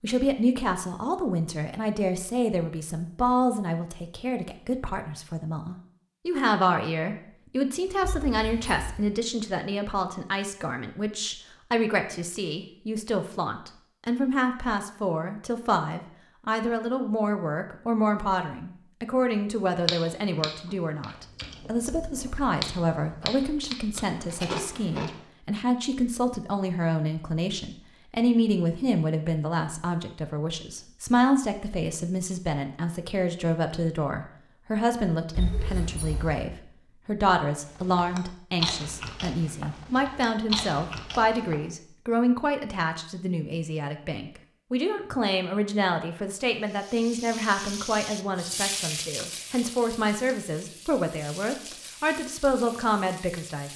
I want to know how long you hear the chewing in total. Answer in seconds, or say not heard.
9 s.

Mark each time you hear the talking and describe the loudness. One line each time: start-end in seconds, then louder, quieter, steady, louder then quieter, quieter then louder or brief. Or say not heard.
0.0-53.7 steady.